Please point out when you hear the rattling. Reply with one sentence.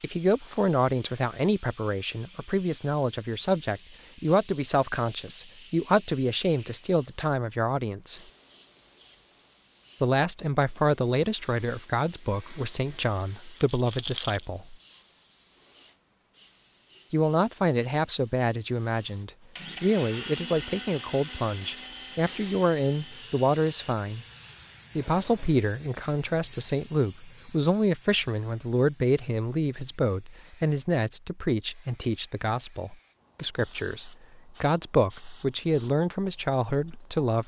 You can hear the rattling from 13.5 to 14.4 s.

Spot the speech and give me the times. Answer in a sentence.
The speech can be heard from 0.0 to 8.2 s, from 10.0 to 14.8 s, from 17.1 to 24.2 s and from 24.9 to 37.4 s.